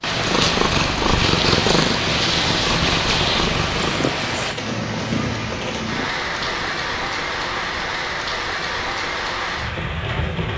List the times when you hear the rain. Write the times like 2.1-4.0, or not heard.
0.0-10.5.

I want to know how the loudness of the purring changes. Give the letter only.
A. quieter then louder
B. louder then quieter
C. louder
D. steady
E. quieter
E.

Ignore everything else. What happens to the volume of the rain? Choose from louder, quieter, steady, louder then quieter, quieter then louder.
steady.